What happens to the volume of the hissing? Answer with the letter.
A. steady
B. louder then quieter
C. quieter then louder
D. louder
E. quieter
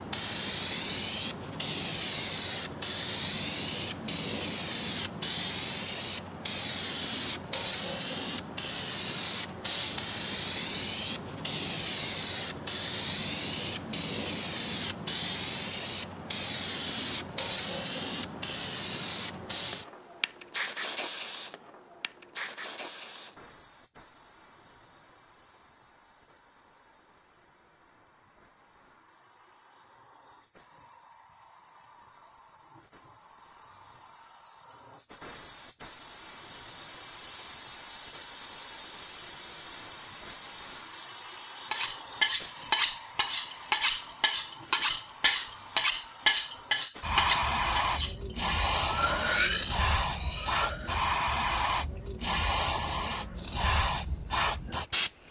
C.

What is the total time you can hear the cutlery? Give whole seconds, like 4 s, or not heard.
9 s.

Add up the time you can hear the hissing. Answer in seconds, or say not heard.
55 s.